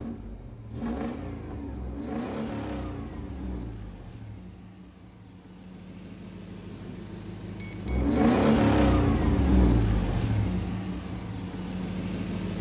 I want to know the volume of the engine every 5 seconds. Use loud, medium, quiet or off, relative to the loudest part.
medium, loud, medium.